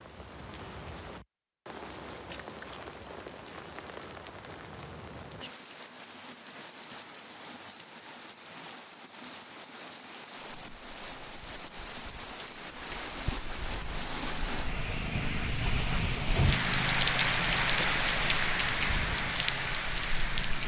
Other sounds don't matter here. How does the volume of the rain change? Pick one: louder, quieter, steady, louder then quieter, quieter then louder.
louder.